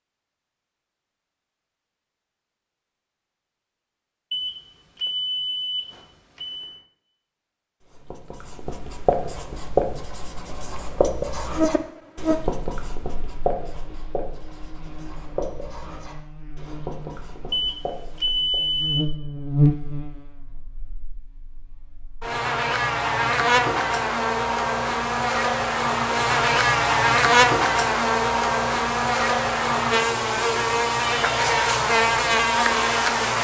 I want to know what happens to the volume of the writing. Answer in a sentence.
The loudness of the writing goes down.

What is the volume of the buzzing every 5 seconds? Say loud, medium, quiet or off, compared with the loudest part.
off, off, medium, medium, medium, loud, loud.